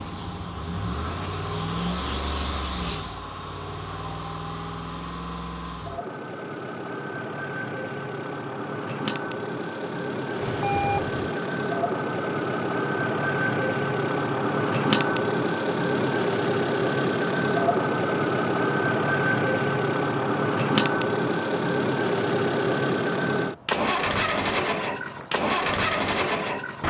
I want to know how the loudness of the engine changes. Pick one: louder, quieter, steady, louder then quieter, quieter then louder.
louder.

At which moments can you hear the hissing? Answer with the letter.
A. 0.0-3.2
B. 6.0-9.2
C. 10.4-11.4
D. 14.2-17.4
A.